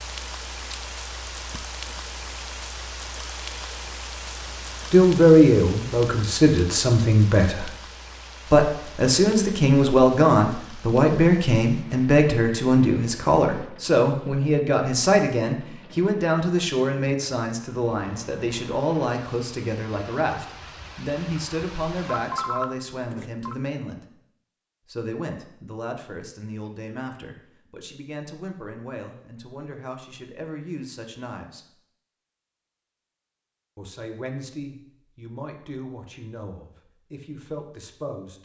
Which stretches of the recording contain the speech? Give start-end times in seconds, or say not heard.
4.9-7.7, 8.4-24.1, 24.9-31.7, 33.8-38.4.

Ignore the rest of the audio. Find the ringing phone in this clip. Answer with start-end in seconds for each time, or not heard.
22.1-23.6.